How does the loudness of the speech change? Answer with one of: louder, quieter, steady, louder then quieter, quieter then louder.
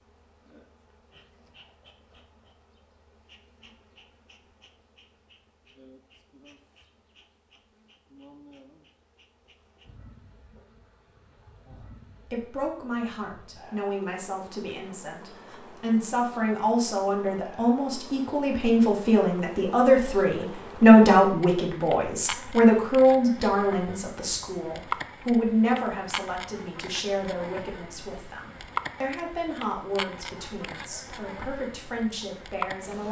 louder then quieter.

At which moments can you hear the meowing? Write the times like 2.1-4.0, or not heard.
not heard.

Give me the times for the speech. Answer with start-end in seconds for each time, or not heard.
11.7-33.0.